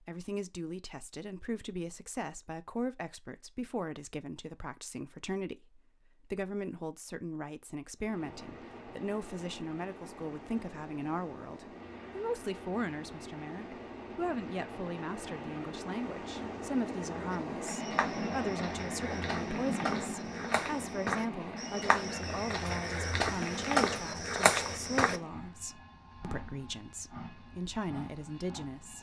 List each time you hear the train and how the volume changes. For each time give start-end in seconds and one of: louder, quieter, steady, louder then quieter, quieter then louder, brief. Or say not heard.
8.0-28.9 louder then quieter.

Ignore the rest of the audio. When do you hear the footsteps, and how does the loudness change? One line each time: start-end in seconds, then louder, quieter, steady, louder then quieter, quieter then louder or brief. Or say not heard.
17.3-25.2 louder.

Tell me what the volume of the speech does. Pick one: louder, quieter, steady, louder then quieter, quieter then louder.
steady.